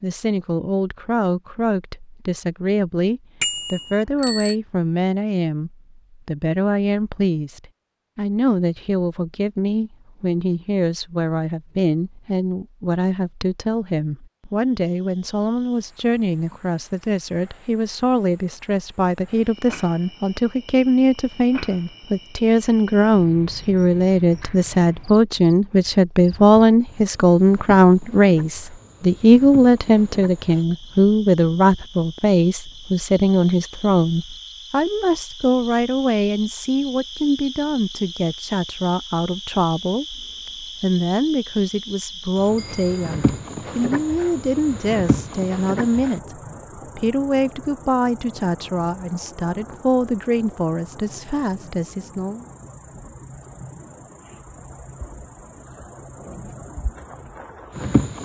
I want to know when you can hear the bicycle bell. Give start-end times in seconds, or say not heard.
3.4-4.5, 42.5-43.4.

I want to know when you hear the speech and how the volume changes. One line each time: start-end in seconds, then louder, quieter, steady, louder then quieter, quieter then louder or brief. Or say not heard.
0.0-52.5 louder then quieter.